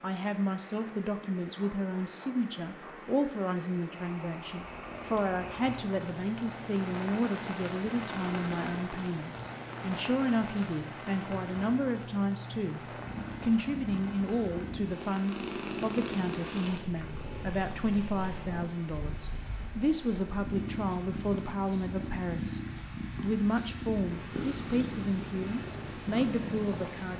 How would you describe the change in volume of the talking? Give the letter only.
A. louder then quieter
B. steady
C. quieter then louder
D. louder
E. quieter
B.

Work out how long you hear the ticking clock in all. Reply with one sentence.
The ticking clock can't be heard in this clip.